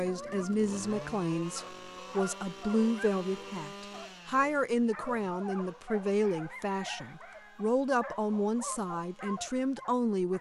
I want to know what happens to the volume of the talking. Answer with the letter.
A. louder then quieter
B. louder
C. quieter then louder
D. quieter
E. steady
E.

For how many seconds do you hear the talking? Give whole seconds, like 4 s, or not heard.
10 s.